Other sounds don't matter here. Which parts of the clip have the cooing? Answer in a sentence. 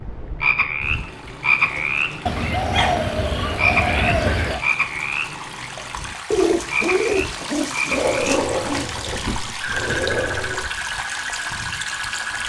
The cooing can be heard from 2.2 to 4.6 s and from 6.3 to 9.0 s.